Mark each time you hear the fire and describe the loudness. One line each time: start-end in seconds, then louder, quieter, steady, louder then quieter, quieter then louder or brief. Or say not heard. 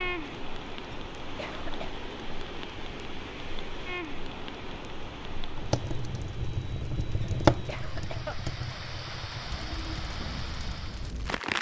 0.1-11.5 louder then quieter.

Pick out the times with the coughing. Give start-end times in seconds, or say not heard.
0.9-1.9, 7.2-8.3.